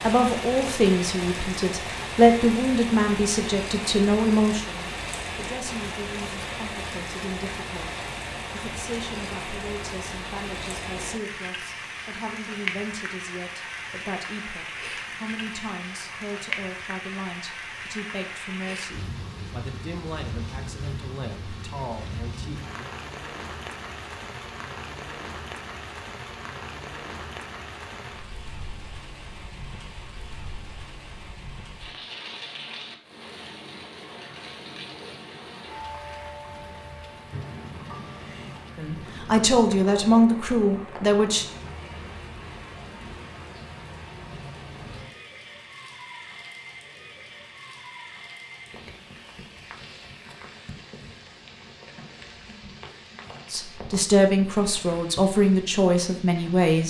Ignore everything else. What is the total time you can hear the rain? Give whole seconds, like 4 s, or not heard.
57 s.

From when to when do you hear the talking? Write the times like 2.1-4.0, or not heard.
0.0-22.9, 38.8-41.5, 53.5-56.8.